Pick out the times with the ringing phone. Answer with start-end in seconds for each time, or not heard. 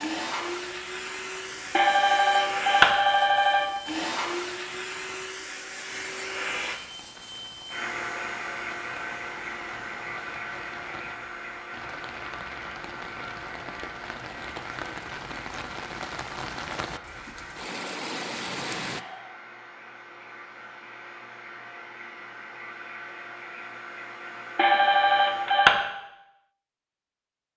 1.7-3.7, 24.6-25.9.